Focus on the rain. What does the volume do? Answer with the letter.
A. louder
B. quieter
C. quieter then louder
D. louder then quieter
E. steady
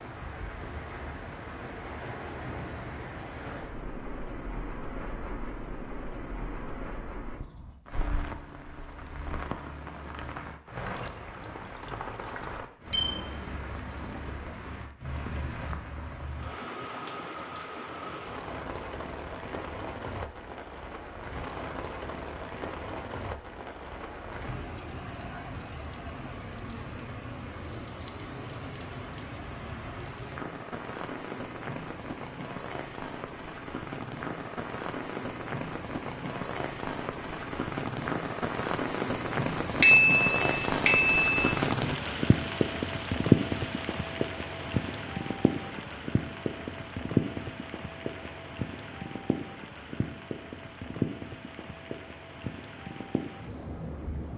A.